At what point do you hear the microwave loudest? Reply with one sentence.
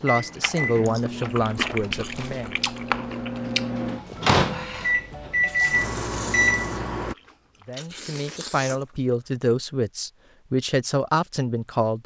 The loudest moment of the microwave is at 6 seconds.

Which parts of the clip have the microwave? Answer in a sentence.
The microwave can be heard from 0.0 to 7.2 s.